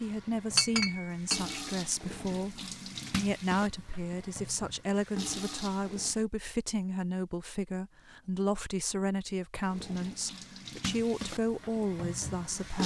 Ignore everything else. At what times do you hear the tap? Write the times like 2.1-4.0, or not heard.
0.0-6.2, 9.7-12.8.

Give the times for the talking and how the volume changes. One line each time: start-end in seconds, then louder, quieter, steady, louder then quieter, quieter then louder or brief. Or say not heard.
0.0-12.8 steady.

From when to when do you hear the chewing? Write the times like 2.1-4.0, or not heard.
not heard.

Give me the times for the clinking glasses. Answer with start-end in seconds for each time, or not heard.
0.6-1.6.